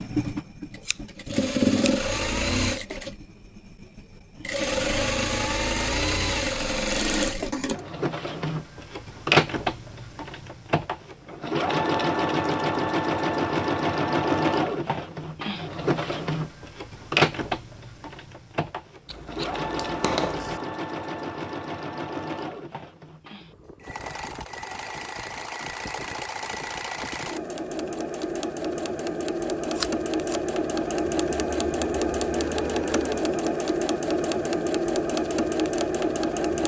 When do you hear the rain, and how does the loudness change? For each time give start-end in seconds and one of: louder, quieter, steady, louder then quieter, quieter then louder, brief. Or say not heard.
not heard.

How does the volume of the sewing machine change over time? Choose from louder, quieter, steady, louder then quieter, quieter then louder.
quieter then louder.